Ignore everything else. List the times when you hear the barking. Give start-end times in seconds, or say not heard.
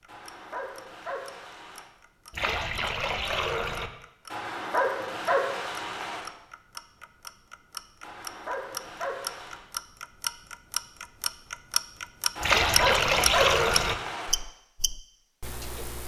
0.1-1.9, 4.3-6.2, 8.0-9.7, 12.3-14.3.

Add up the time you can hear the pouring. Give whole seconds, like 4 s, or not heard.
3 s.